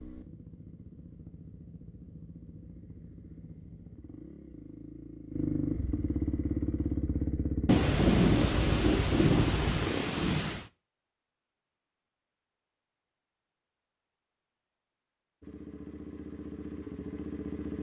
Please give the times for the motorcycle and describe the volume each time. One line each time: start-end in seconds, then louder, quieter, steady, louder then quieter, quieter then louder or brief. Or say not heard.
0.0-10.1 louder
15.4-17.7 brief.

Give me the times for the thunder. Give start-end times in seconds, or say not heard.
7.7-10.7.